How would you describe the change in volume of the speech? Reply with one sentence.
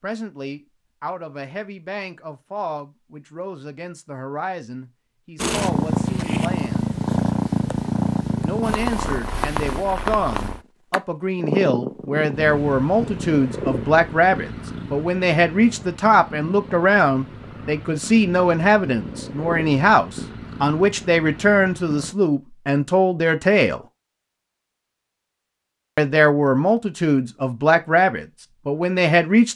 The volume of the speech goes up.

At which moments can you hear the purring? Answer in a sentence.
You can hear the purring from 5.4 to 22.1 s.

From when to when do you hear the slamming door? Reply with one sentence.
The slamming door can't be heard in this clip.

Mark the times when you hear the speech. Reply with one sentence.
You can hear the speech from 0.0 to 6.8 s, from 8.4 to 23.8 s and from 25.9 to 29.5 s.